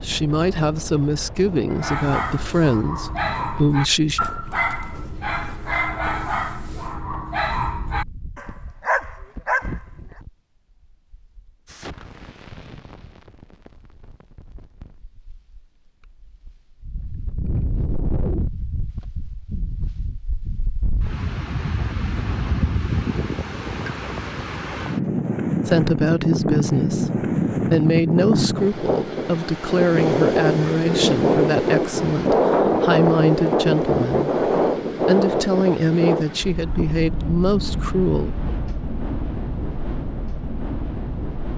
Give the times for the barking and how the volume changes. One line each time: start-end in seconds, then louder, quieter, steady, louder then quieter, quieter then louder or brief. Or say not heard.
1.7-9.8 steady.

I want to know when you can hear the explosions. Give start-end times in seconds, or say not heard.
11.7-14.9.